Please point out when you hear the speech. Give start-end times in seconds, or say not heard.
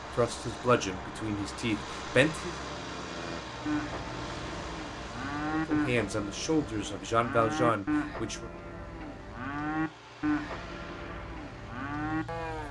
0.1-2.5, 5.5-8.5.